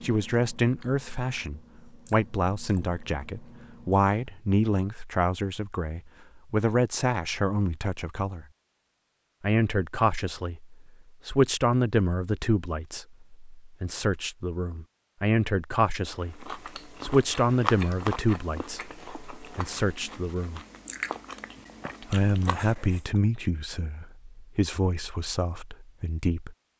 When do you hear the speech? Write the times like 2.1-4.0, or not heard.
0.0-8.4, 9.4-20.6, 22.0-26.6.